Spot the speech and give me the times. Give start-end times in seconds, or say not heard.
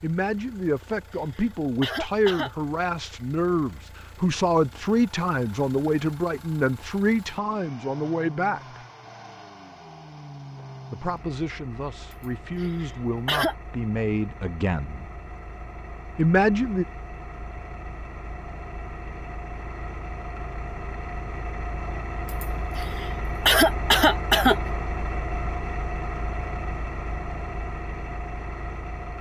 0.0-8.8, 10.9-15.1, 16.1-16.9.